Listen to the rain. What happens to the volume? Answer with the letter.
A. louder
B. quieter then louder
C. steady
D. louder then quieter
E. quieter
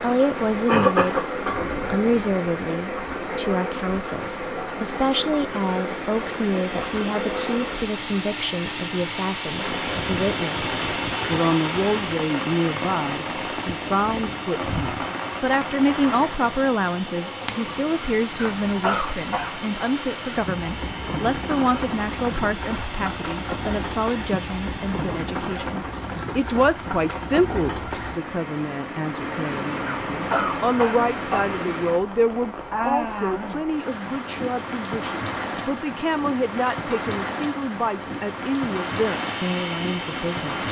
C.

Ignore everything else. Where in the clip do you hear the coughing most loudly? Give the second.
1 s.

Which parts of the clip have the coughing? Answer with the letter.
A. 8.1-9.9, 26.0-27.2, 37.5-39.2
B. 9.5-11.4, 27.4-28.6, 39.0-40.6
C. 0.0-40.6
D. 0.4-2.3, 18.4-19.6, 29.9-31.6
D.